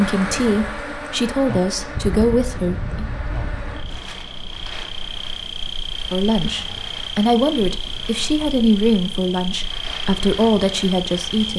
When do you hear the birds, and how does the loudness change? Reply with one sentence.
The birds can't be heard in this clip.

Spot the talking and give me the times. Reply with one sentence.
You can hear the talking from 0.0 to 3.0 s and from 6.1 to 11.5 s.